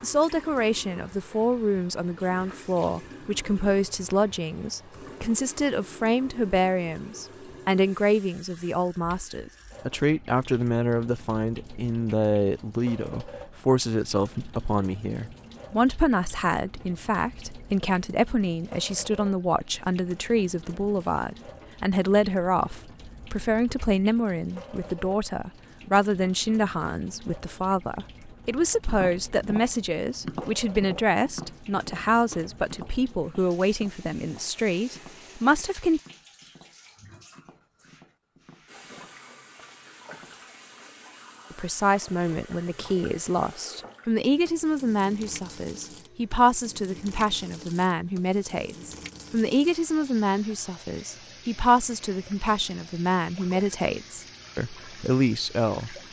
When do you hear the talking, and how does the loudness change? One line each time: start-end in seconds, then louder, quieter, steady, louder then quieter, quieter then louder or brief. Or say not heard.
0.0-36.0 steady
41.5-56.0 steady.